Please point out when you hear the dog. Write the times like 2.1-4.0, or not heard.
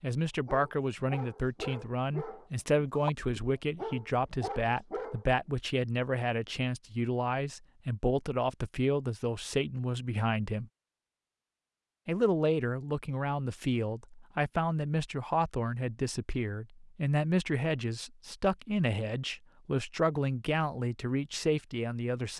0.3-5.2.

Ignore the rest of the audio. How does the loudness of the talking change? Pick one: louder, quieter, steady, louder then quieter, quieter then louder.
steady.